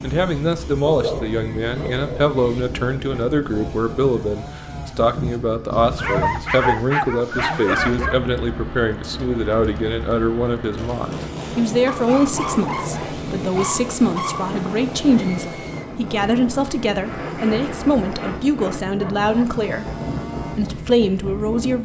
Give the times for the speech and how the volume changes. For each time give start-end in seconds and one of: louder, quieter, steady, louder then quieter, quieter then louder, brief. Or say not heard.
0.0-19.9 steady
20.6-21.8 brief.